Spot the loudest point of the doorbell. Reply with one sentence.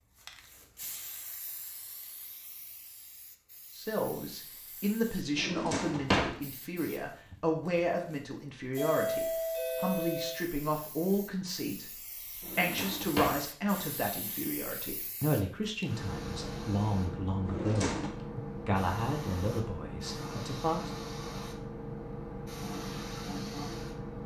The volume of the doorbell peaks at 9 seconds.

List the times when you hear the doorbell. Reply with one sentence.
You can hear the doorbell from 8.8 to 10.3 s.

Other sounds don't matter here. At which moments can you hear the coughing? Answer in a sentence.
You can't hear the coughing here.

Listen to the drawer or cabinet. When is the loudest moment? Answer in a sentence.
The loudest moment of the drawer or cabinet is at 6 seconds.